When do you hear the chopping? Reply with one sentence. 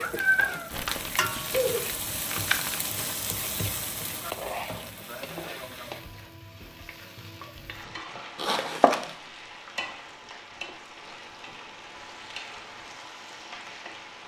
You can't hear the chopping here.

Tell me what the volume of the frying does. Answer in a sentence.
The loudness of the frying goes down.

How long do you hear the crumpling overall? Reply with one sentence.
You can hear the crumpling for 3 seconds altogether.